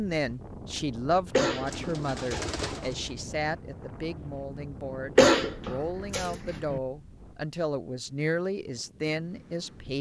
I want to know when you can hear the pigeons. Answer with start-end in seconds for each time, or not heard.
1.6-3.2.